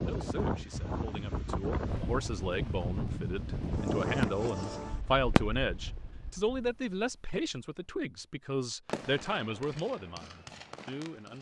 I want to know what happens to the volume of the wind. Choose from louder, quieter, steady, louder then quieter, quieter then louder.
quieter.